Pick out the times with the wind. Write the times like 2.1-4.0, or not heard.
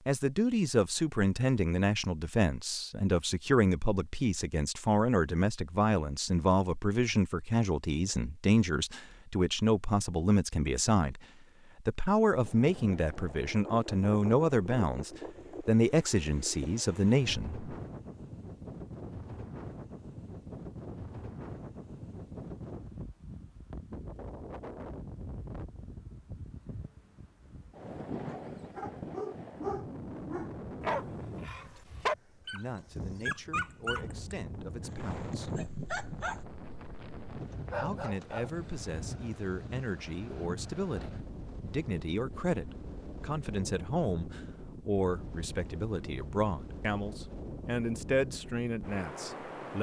12.4-49.7.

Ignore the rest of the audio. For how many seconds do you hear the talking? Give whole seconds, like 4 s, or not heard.
33 s.